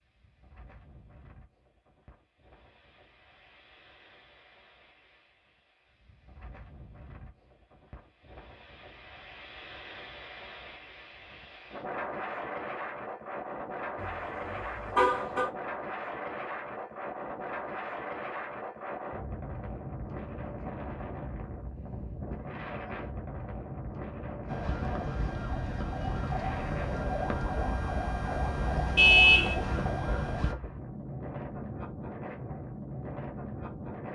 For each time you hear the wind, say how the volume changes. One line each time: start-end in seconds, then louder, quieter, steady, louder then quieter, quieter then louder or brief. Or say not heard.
0.0-34.0 louder.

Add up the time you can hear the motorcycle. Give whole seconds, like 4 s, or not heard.
not heard.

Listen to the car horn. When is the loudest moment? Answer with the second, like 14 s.
29 s.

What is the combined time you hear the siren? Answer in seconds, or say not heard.
6 s.